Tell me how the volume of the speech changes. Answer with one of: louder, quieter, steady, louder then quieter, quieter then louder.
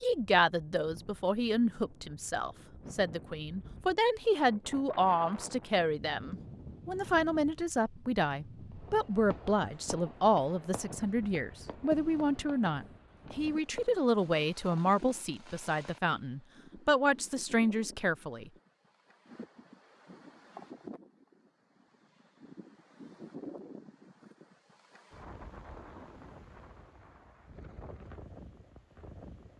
steady.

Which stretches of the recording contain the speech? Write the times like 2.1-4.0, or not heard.
0.0-18.5.